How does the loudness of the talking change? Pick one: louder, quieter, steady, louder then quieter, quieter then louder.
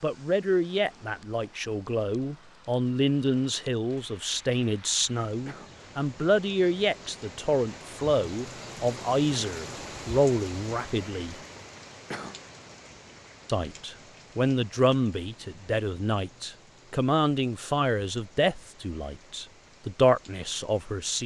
steady.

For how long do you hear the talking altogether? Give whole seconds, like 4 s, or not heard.
19 s.